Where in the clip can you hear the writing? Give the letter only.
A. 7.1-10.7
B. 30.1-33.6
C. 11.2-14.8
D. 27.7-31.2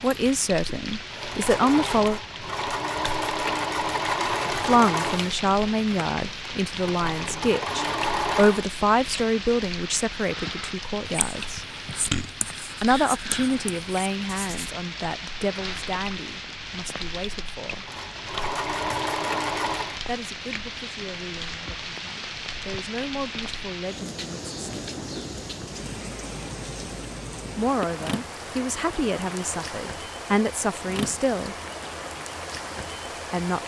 C.